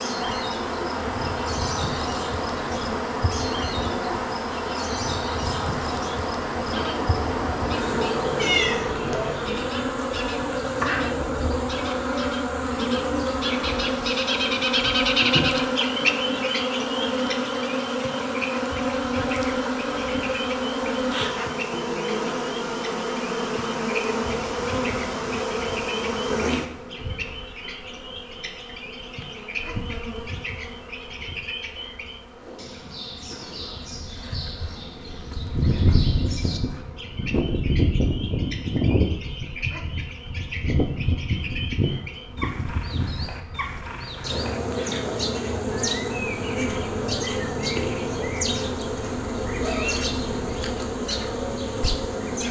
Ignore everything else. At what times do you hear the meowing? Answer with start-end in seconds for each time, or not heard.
8.3-9.2.